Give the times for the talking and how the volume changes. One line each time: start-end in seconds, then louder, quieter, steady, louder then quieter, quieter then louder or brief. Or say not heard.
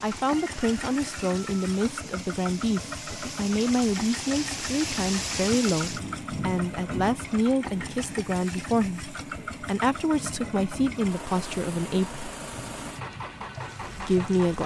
0.0-12.2 steady
13.9-14.6 brief.